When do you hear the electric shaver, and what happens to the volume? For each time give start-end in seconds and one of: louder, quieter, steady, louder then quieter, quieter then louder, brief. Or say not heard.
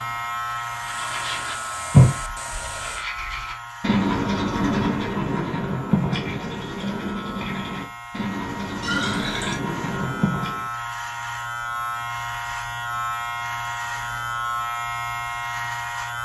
0.0-16.2 quieter then louder.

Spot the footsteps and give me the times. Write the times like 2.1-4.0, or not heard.
not heard.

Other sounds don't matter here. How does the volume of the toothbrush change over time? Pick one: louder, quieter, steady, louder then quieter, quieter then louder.
quieter.